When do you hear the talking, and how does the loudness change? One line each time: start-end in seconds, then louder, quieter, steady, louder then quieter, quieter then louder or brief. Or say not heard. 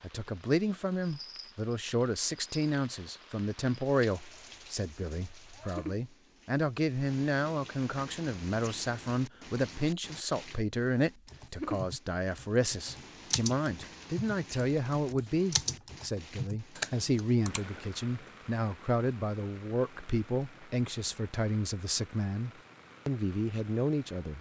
0.0-24.3 steady.